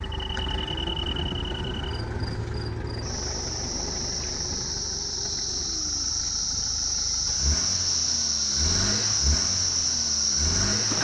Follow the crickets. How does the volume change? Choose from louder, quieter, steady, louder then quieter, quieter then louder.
louder.